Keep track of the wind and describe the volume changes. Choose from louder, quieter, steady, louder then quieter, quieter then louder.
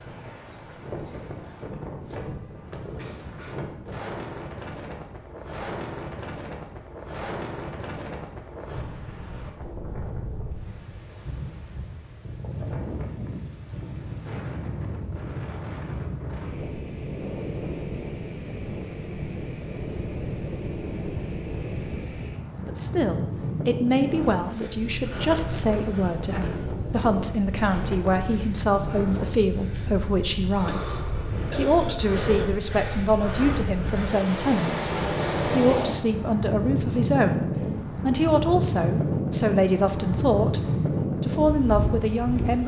louder.